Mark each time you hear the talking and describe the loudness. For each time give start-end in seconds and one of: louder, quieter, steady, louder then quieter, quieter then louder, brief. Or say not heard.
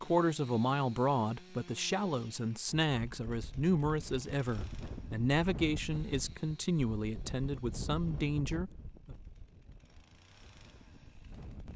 0.0-9.2 steady.